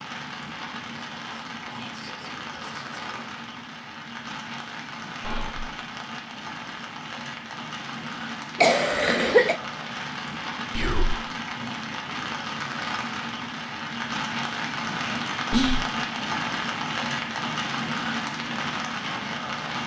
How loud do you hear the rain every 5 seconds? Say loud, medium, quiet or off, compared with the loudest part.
medium, medium, loud, loud.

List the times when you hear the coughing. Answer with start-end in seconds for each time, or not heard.
8.6-9.6.